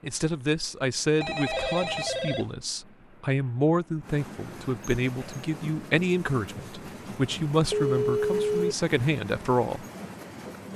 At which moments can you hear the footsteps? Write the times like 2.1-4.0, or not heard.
not heard.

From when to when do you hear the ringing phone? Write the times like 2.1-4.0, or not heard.
1.2-2.5, 7.7-8.8.